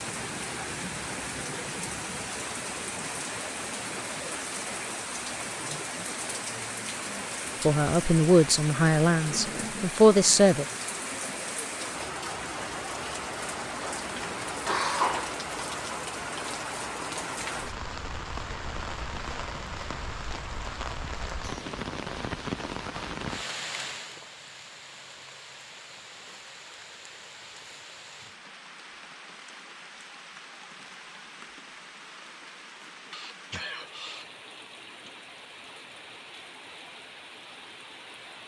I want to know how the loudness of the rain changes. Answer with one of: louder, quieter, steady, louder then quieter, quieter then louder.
quieter.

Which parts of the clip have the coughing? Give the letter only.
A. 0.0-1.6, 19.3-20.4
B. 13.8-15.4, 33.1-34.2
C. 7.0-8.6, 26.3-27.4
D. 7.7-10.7
B.